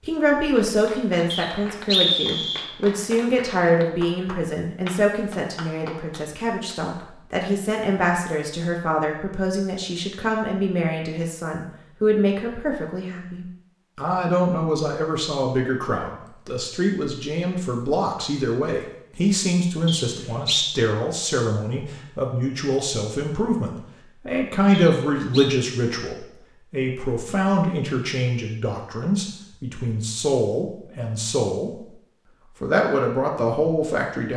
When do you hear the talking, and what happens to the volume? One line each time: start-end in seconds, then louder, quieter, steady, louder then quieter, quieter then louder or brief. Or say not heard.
0.0-31.9 steady
32.6-34.3 brief.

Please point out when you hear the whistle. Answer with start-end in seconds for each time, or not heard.
1.3-2.6, 19.9-20.8, 24.7-25.6.